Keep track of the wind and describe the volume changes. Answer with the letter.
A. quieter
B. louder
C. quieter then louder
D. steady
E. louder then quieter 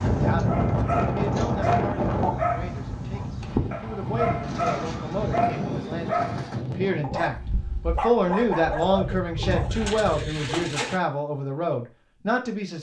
A.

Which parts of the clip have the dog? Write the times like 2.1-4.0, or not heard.
0.5-9.7.